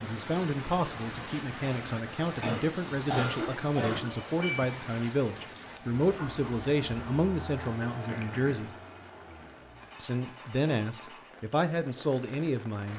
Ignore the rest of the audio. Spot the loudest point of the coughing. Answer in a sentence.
The loudest moment of the coughing is at 3 seconds.